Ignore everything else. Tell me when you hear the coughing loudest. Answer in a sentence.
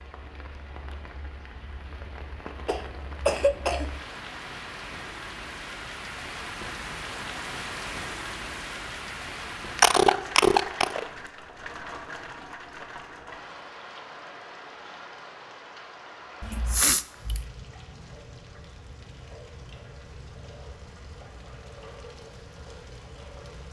The loudest moment of the coughing is at 10 seconds.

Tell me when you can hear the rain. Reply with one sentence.
The rain can be heard from 0.0 to 23.6 s.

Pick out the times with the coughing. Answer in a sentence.
You can hear the coughing from 2.6 to 3.9 s, from 9.8 to 11.1 s and from 16.4 to 17.4 s.